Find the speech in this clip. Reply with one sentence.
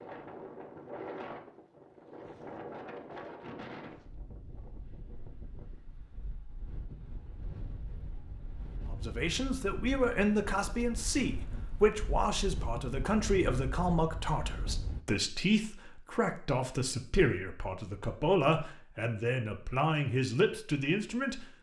You can hear the speech from 8.9 to 21.5 s.